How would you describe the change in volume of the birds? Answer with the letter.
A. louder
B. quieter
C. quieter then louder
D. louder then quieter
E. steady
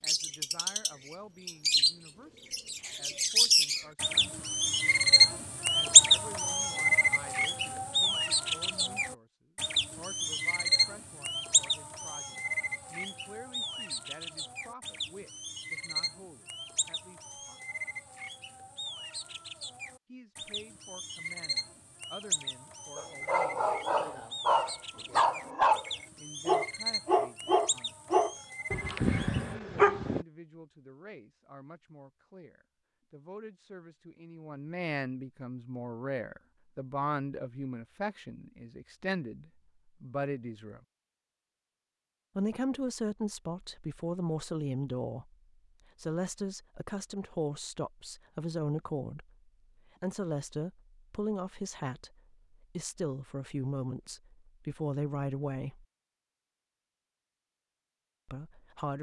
B.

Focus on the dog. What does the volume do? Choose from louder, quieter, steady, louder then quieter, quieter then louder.
steady.